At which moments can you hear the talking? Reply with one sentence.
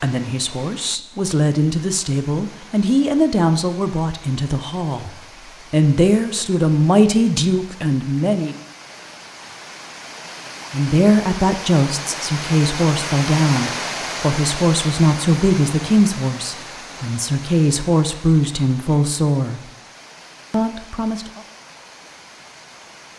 The talking can be heard from 0.0 to 8.6 s, from 10.7 to 19.6 s and from 20.5 to 21.4 s.